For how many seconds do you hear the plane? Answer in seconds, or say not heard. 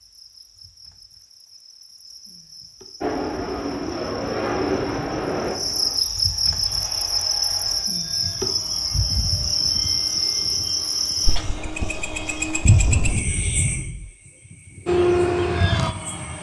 11 s.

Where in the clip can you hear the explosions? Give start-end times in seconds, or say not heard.
12.7-14.1.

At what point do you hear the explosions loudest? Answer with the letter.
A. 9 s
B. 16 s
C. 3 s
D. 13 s
D.